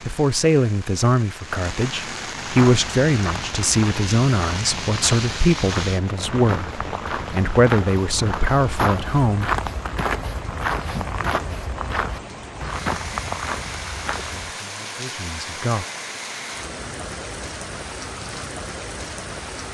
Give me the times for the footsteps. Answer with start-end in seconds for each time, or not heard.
2.5-14.6.